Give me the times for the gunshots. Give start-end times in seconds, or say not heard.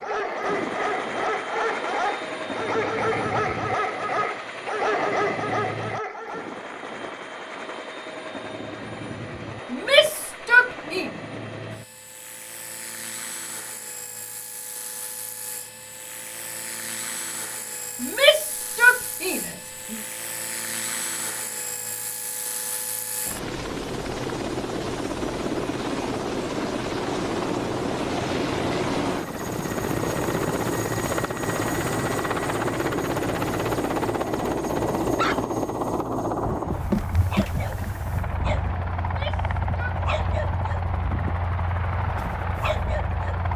not heard.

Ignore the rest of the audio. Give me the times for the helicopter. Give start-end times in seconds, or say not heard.
0.0-43.5.